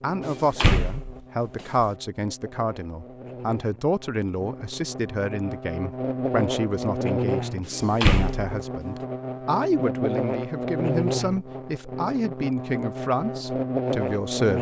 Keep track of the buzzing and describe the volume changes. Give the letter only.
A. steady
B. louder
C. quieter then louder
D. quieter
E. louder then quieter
B.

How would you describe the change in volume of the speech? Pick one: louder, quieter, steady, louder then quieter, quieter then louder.
steady.